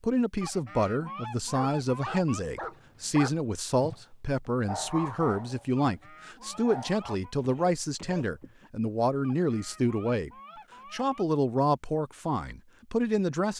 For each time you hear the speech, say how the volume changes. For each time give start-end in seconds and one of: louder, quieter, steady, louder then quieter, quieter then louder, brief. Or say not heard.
0.0-10.3 steady
10.9-13.5 brief.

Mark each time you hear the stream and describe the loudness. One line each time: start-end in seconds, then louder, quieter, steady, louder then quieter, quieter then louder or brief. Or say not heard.
not heard.